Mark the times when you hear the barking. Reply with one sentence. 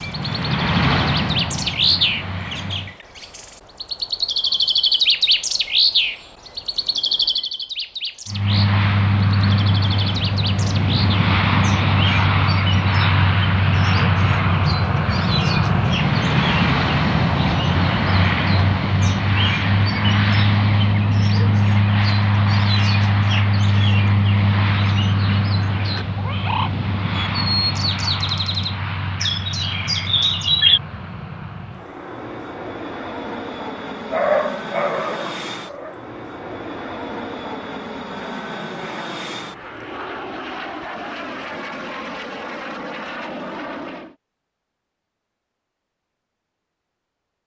You can hear the barking from 34.1 to 36.0 s.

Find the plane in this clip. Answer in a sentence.
You can hear the plane from 0.0 to 3.0 s and from 8.2 to 44.1 s.